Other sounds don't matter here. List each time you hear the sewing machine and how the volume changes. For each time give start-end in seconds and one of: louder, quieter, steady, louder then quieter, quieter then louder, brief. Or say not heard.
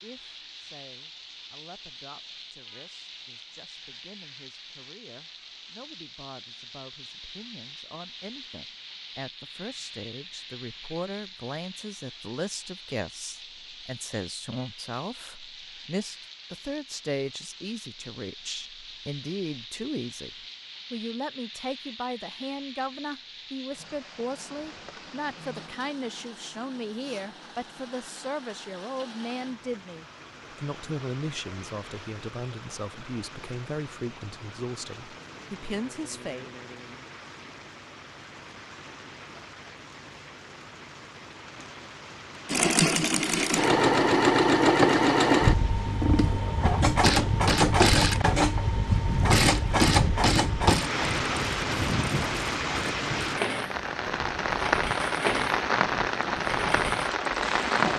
42.5-57.9 quieter.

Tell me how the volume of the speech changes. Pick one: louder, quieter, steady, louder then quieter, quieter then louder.
louder.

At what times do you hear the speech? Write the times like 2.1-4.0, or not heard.
0.0-36.5.